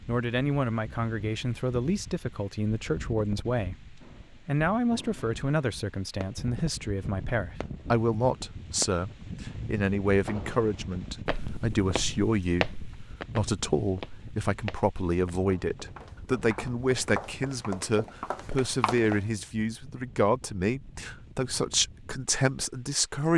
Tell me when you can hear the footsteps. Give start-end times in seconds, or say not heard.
11.2-19.2.